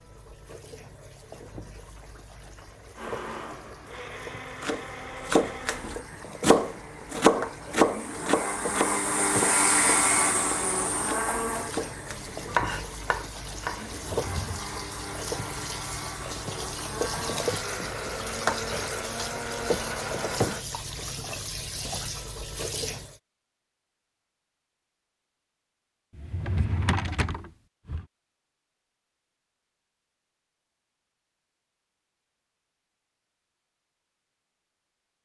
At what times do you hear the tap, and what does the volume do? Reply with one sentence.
The tap can be heard from 0.0 to 23.2 s, getting louder.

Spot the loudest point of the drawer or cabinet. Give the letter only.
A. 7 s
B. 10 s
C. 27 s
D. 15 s
C.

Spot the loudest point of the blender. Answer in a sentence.
The loudest moment of the blender is at 10 seconds.